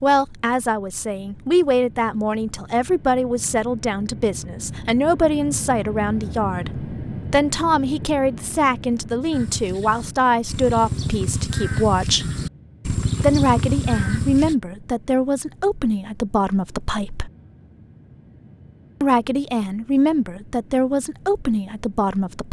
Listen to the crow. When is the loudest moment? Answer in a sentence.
The volume of the crow peaks at 13 seconds.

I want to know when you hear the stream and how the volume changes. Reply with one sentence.
You can't hear the stream here.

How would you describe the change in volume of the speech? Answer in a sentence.
The volume of the speech stays about the same.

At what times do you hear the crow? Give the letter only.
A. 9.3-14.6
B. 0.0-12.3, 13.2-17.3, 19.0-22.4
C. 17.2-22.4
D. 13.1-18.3
A.